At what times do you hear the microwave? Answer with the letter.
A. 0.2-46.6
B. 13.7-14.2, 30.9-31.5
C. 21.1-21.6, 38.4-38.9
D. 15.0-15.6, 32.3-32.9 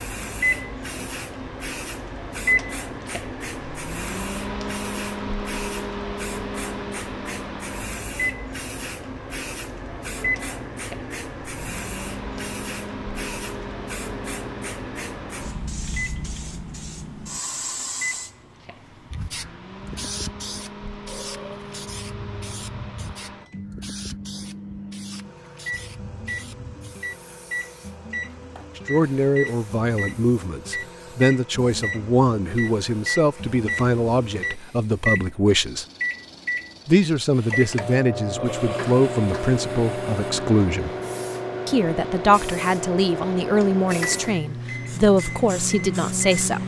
A.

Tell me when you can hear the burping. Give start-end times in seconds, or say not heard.
21.1-21.6, 38.4-38.9.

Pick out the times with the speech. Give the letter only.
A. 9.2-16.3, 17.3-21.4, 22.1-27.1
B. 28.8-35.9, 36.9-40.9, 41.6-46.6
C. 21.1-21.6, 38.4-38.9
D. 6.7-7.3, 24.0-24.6
B.